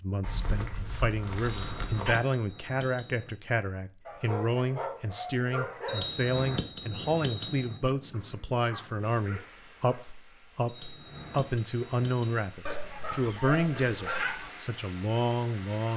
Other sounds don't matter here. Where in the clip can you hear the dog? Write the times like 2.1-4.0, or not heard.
0.2-2.2, 4.0-6.0, 8.1-10.1, 12.7-14.5.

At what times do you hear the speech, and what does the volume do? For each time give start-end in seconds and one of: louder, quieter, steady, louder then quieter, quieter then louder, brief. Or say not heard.
0.0-15.9 steady.